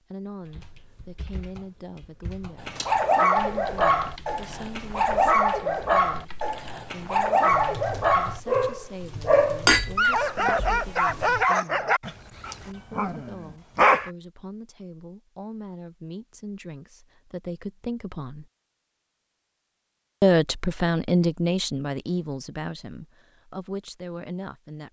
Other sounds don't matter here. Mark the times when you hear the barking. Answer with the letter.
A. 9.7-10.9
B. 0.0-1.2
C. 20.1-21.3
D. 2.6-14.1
D.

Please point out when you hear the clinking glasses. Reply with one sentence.
The clinking glasses can be heard from 9.7 to 10.9 s.